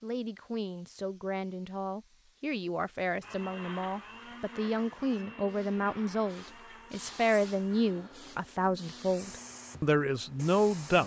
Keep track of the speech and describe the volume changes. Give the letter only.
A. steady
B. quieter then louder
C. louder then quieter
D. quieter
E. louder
E.